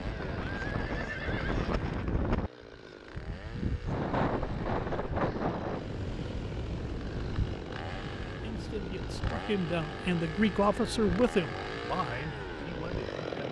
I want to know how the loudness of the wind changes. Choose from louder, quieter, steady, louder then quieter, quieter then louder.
quieter.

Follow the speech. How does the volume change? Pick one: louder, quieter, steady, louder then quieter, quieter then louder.
louder then quieter.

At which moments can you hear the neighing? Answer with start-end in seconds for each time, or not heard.
0.1-1.8.